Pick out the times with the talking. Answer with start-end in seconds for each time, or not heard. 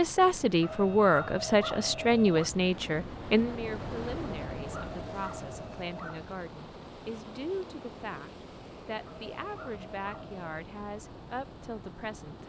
0.0-12.4.